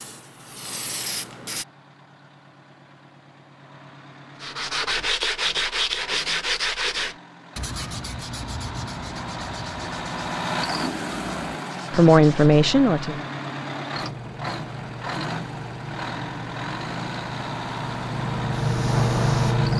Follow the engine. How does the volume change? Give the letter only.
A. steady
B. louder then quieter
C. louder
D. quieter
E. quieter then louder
C.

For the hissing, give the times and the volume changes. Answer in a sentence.
You can hear the hissing briefly from 0.0 to 1.6 s; and from 13.9 to 19.7 s, getting louder.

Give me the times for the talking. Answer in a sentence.
The talking can be heard from 11.9 to 13.2 s.